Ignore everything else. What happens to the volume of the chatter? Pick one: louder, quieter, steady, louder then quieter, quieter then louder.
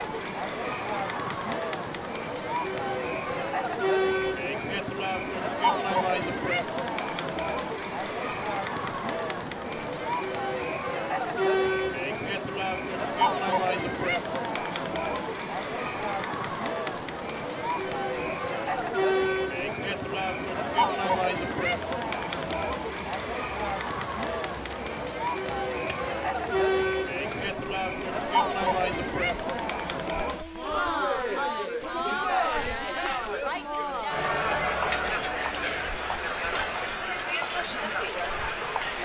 steady.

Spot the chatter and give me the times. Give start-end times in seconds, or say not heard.
0.0-39.0.